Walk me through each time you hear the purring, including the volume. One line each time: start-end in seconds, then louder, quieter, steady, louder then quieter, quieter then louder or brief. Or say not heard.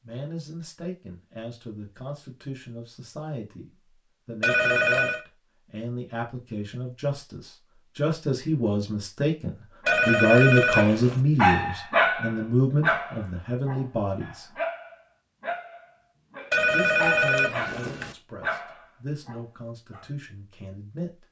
not heard.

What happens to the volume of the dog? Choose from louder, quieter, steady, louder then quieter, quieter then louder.
quieter.